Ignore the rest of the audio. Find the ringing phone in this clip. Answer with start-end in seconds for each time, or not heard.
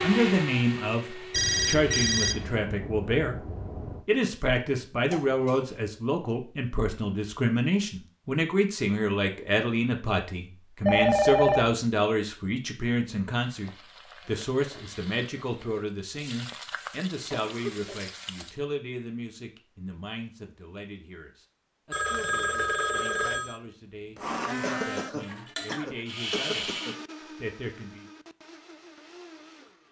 1.3-4.0, 10.8-11.8, 21.9-23.6.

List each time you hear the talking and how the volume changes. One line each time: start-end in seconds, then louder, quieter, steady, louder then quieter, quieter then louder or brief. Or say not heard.
0.0-28.1 quieter.